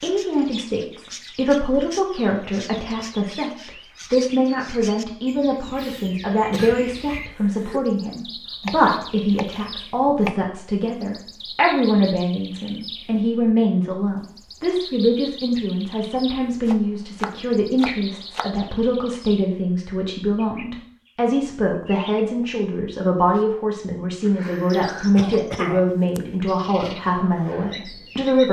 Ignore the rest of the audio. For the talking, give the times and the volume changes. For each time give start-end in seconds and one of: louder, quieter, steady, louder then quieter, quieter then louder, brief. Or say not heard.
0.0-28.4 steady.